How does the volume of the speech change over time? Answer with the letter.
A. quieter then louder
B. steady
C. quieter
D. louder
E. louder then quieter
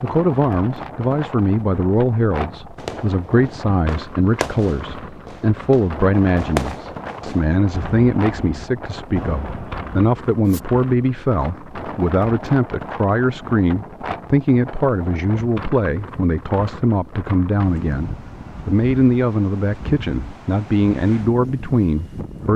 B.